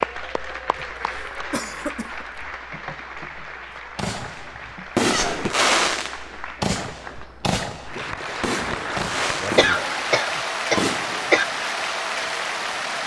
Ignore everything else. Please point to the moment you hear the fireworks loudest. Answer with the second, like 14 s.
6 s.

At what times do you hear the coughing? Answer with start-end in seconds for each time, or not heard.
0.8-2.5, 5.1-5.6, 9.6-11.4.